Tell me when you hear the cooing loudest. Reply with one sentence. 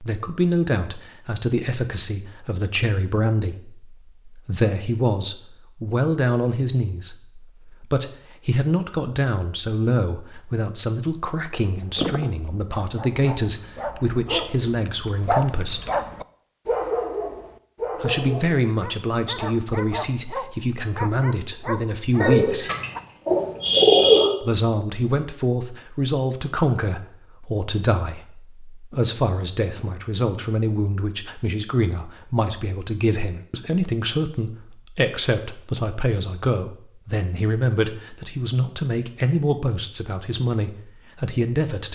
The volume of the cooing peaks at 24 seconds.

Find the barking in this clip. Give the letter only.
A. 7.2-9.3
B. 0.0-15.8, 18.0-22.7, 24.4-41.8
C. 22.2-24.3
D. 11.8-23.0
D.